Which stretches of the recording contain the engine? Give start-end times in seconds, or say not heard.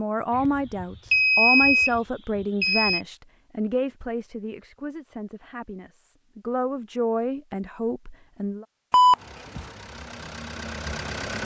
9.2-11.3.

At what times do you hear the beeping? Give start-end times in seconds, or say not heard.
0.3-3.0, 8.9-9.7.